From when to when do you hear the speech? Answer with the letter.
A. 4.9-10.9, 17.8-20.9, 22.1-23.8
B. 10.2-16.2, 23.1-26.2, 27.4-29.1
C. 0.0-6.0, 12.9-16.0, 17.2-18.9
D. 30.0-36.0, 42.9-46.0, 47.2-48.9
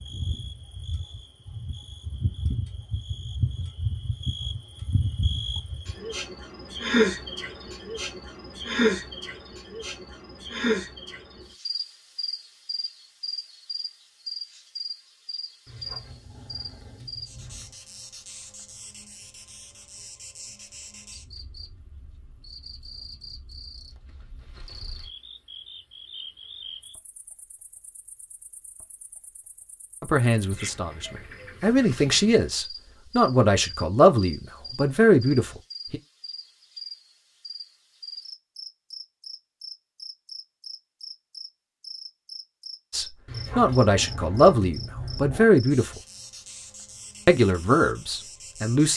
D.